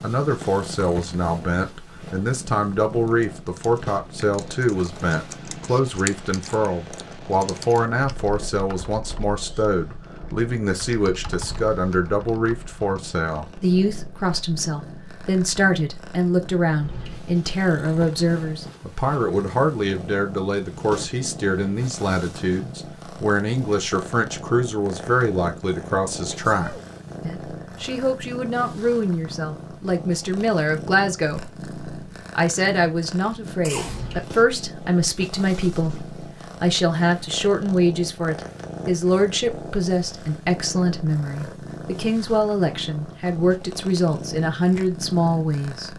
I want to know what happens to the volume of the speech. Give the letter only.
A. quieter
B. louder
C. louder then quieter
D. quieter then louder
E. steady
E.